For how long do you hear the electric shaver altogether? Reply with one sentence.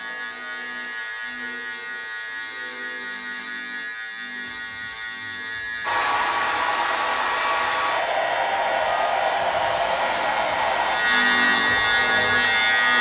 The electric shaver can be heard for 13 seconds in total.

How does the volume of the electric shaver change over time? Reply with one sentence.
The loudness of the electric shaver goes up.